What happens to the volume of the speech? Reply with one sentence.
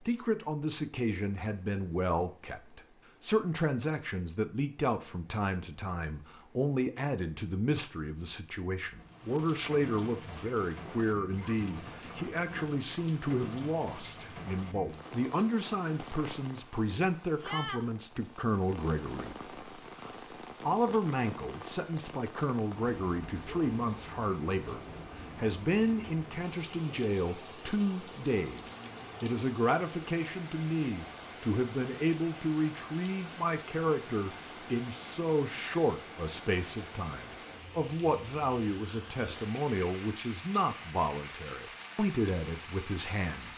The loudness of the speech stays about the same.